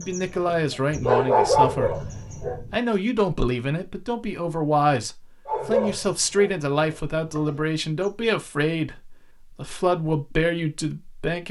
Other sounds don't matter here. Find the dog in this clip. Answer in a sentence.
The dog can be heard from 0.0 to 2.6 s and from 5.5 to 8.1 s.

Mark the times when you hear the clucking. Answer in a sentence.
The clucking can't be heard in this clip.